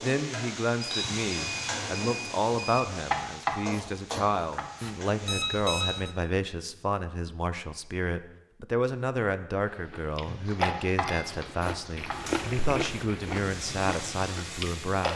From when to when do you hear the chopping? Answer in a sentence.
The chopping can be heard from 3.1 to 5.0 s and from 10.6 to 12.4 s.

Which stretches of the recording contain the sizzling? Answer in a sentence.
You can hear the sizzling from 0.0 to 6.0 s and from 12.1 to 15.1 s.